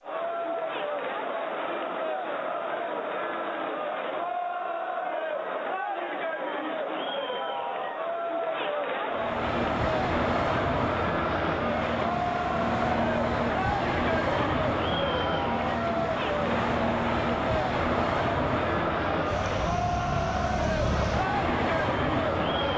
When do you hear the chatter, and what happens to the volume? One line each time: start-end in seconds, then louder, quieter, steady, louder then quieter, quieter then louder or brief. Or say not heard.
0.0-22.7 steady.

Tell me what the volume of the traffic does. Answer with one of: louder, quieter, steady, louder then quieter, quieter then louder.
steady.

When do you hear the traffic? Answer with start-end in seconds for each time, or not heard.
9.1-22.7.